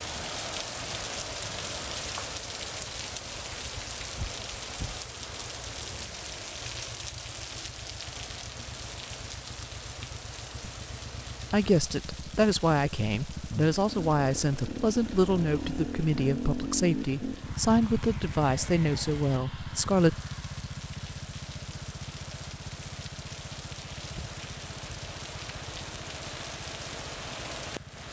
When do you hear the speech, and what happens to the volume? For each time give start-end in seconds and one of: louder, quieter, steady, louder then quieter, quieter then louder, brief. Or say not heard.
11.5-20.1 steady.